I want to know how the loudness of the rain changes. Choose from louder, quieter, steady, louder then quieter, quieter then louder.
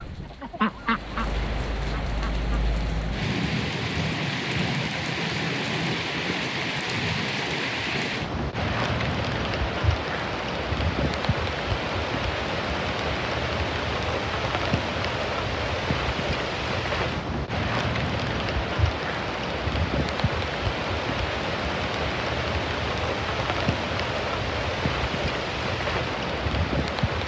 steady.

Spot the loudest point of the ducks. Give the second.
1 s.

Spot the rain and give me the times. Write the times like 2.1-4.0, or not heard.
0.0-27.2.